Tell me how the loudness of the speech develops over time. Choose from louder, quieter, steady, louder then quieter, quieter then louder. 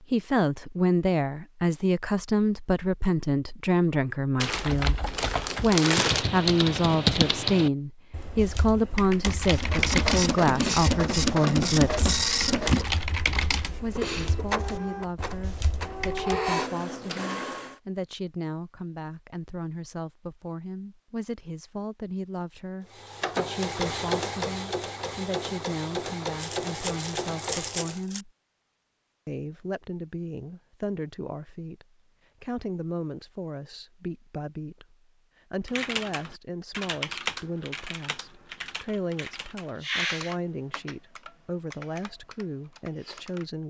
quieter.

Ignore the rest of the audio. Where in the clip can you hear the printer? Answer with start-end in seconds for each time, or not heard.
9.5-17.8, 22.9-28.1.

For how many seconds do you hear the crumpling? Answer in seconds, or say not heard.
4 s.